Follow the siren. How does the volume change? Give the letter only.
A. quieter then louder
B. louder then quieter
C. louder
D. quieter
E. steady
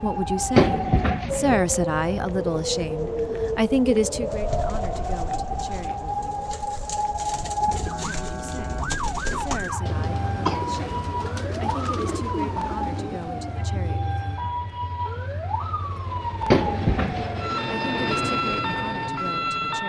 E.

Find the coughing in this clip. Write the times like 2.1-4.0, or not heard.
0.6-1.6, 9.3-10.8, 16.5-17.2.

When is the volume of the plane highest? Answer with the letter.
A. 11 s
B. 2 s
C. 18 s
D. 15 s
C.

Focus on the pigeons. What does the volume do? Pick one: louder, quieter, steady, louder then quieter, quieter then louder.
louder.